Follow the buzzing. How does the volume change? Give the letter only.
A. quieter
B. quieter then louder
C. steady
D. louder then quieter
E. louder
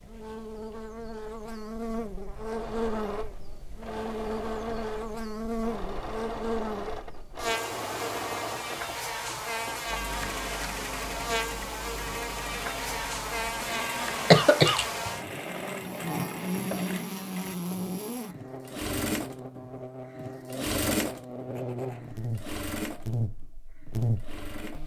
C.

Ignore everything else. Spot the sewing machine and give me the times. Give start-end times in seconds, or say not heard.
2.4-24.8.